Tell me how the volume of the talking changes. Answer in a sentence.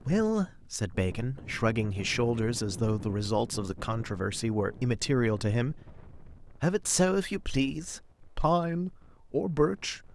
The loudness of the talking stays about the same.